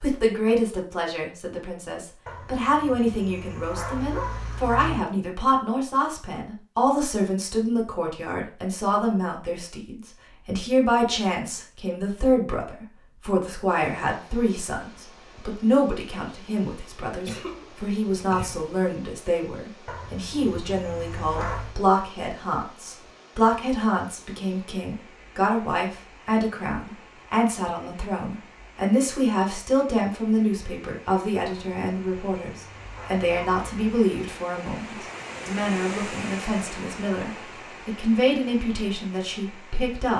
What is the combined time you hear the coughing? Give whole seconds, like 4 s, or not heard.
2 s.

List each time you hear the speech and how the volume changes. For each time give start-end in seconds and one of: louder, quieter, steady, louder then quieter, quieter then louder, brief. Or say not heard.
0.0-40.1 steady.